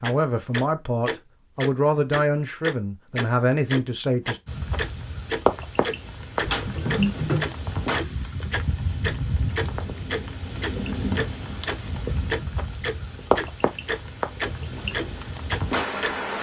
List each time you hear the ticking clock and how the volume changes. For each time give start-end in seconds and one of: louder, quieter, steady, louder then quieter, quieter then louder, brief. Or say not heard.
0.0-16.1 steady.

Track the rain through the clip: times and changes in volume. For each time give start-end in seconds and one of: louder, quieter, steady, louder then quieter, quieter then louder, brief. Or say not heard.
4.5-16.3 steady.